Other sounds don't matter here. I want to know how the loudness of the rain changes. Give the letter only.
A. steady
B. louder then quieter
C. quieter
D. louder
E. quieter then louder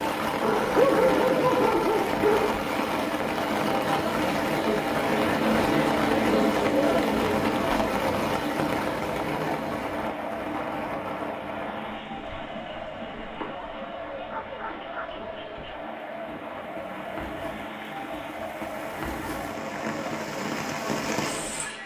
E.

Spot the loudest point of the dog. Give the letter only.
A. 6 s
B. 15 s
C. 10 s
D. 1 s
D.